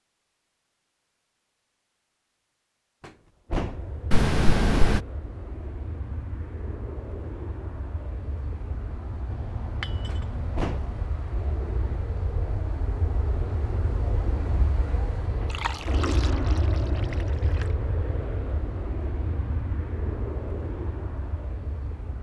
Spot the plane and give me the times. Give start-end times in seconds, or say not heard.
3.5-22.1.